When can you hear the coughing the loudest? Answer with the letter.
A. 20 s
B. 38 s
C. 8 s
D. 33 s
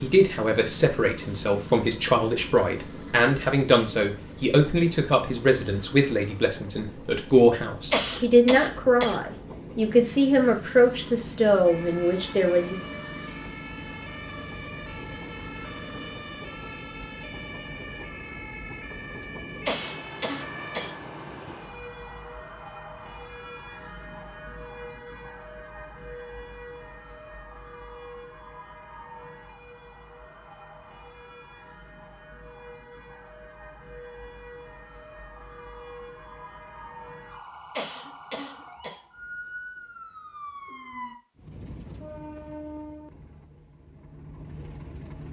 C.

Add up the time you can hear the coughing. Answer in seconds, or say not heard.
5 s.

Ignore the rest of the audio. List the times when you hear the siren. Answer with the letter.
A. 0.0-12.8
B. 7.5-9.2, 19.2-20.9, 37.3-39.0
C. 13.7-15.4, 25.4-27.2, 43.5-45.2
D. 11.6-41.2
D.